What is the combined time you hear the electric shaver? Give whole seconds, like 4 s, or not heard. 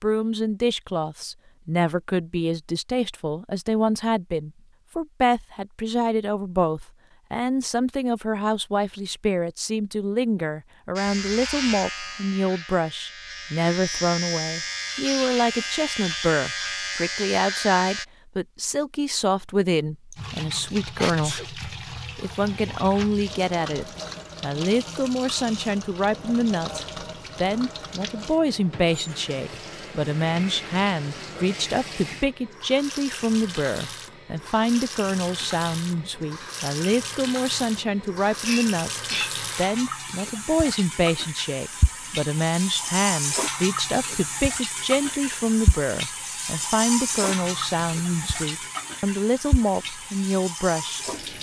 7 s.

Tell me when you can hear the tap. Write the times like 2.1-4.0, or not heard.
20.1-51.3.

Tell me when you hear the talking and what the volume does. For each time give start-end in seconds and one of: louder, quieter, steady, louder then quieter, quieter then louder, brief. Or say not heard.
0.0-51.3 steady.